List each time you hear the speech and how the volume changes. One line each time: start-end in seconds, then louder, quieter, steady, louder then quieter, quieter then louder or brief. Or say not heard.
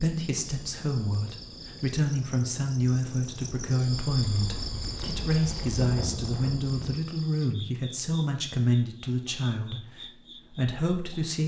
0.0-11.4 steady.